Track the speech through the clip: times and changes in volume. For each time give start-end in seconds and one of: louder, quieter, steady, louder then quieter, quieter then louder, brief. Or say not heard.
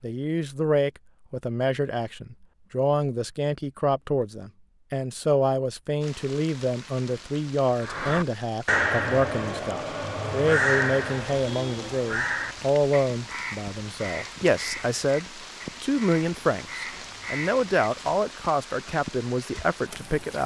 0.0-20.4 steady.